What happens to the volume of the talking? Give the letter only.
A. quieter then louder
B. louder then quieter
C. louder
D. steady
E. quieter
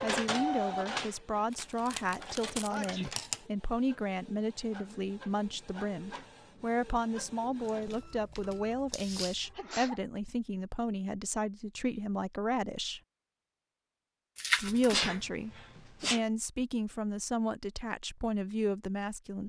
D.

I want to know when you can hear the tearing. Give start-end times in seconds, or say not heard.
1.5-3.5, 7.6-9.4, 14.3-15.1.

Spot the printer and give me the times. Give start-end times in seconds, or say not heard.
0.0-9.6.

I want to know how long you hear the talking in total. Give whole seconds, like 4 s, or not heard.
18 s.